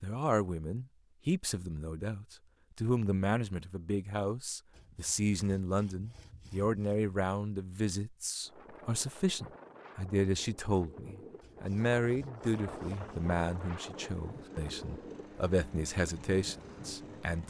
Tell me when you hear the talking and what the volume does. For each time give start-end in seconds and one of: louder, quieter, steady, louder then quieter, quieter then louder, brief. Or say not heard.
0.0-17.4 steady.